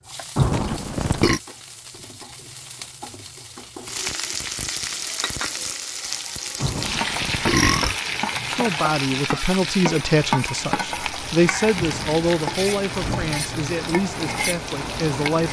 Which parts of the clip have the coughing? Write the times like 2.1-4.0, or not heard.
not heard.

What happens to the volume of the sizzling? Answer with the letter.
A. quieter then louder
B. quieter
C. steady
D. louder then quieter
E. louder
E.